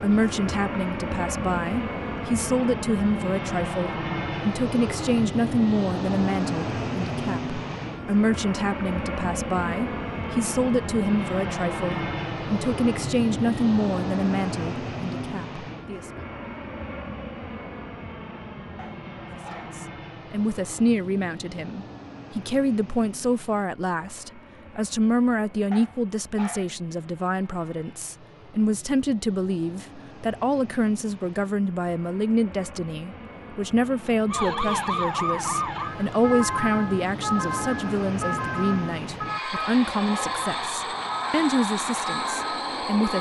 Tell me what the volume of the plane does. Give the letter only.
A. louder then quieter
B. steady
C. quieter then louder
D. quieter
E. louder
C.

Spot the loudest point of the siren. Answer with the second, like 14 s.
35 s.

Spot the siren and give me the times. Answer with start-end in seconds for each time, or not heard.
34.3-43.1.